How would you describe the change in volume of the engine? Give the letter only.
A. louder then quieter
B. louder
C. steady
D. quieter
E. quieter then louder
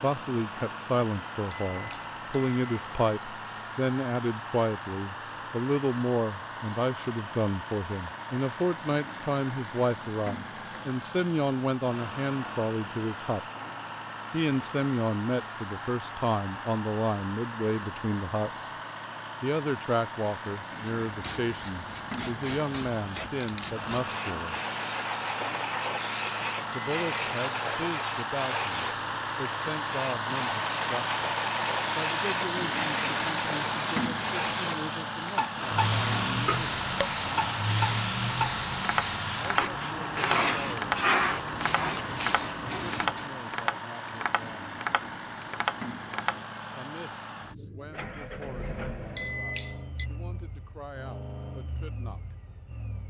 A.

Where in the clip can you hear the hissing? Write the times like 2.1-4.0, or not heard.
20.8-43.3.